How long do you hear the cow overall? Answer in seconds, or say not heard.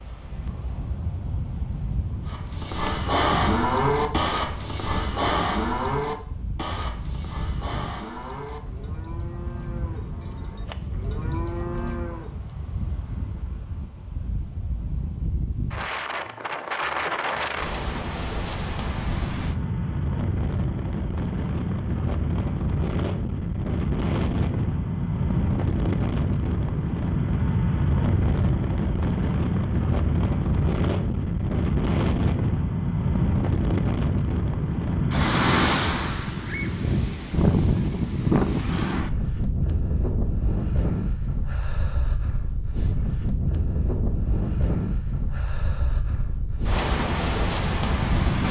10 s.